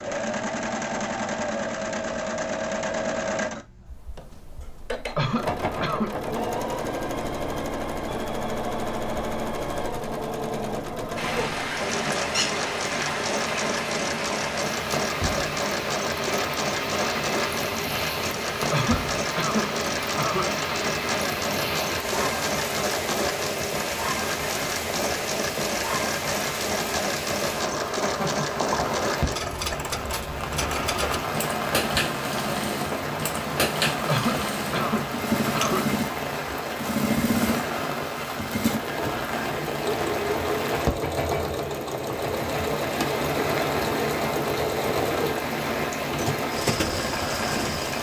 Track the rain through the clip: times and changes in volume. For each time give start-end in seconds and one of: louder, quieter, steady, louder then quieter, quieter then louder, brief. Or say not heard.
11.2-47.9 steady.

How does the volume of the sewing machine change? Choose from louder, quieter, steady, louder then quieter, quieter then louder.
steady.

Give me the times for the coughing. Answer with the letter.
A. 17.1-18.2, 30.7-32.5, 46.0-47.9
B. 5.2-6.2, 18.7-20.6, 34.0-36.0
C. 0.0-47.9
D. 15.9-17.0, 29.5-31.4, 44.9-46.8
B.